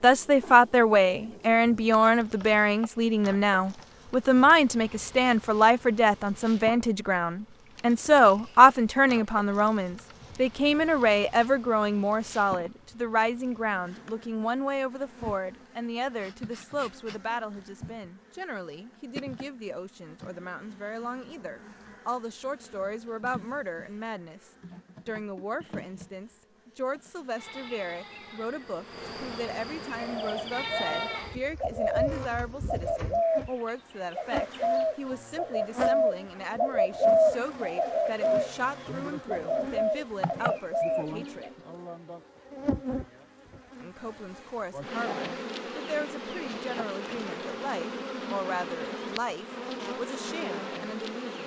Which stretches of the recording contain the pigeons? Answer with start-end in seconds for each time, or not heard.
29.9-41.5.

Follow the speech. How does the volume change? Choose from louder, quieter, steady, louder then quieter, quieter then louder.
quieter.